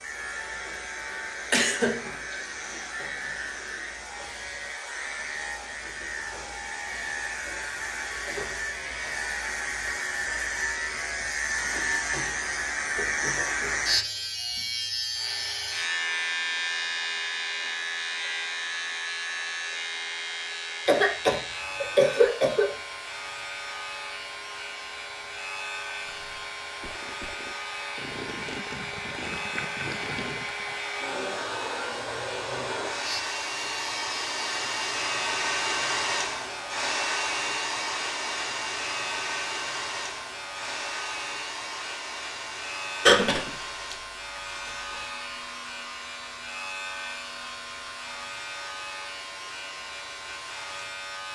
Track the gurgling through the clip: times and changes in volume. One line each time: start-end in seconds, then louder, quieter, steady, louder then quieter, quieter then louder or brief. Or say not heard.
25.9-30.8 louder.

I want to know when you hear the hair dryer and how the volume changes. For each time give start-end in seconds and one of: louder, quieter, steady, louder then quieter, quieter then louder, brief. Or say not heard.
0.0-51.3 louder then quieter.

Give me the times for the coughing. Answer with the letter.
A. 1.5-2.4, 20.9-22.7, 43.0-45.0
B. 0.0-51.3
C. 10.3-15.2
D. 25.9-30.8
A.